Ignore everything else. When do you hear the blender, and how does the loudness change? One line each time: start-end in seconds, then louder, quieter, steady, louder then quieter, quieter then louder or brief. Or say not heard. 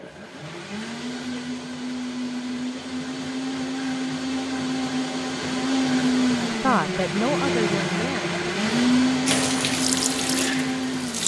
0.0-11.2 louder.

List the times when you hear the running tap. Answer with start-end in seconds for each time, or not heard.
9.2-11.2.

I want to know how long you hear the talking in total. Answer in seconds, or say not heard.
2 s.